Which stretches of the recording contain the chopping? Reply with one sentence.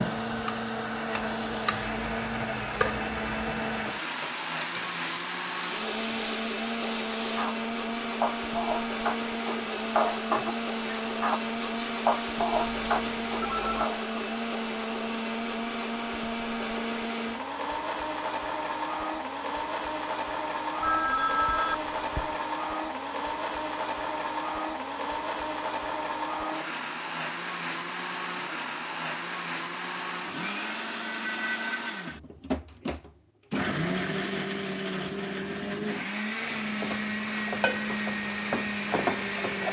The chopping can't be heard in this clip.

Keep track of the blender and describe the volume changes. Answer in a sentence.
The loudness of the blender stays about the same.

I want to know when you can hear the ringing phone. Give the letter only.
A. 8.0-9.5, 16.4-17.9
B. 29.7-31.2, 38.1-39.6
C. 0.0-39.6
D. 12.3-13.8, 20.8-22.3
D.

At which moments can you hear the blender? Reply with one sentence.
The blender can be heard from 0.0 to 39.6 s.